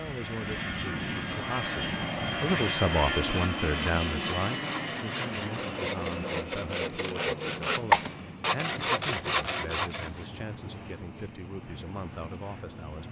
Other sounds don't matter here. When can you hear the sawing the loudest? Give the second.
8 s.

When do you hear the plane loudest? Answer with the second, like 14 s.
3 s.